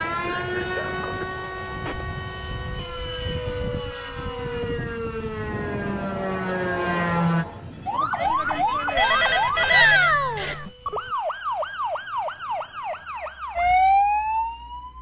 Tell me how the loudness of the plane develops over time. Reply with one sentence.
The loudness of the plane goes up, then down.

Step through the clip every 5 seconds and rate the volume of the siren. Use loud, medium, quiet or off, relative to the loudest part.
medium, loud, loud.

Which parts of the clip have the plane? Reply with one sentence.
The plane can be heard from 0.0 to 11.2 s.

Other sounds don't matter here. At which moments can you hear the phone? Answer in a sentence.
You can hear the phone from 8.2 to 10.7 s.